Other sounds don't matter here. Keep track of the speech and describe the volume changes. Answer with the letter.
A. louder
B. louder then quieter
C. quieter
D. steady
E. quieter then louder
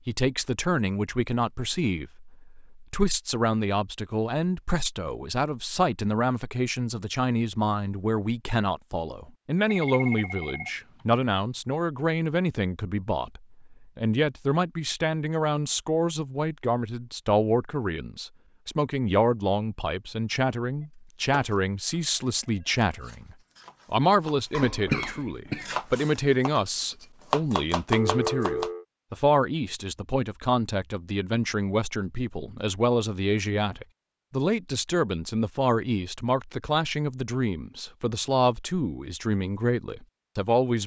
D.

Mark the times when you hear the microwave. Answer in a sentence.
The microwave can't be heard in this clip.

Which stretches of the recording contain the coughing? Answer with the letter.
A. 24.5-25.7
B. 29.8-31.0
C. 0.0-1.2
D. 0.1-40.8
A.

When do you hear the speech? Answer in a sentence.
You can hear the speech from 0.1 to 40.8 s.